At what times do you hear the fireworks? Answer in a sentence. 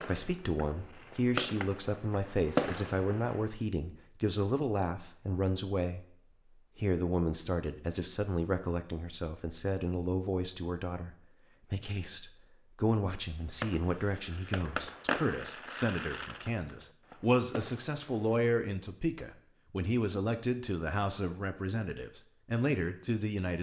You can hear the fireworks from 0.0 to 3.5 s and from 13.4 to 18.4 s.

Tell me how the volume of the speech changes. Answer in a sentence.
The volume of the speech stays about the same.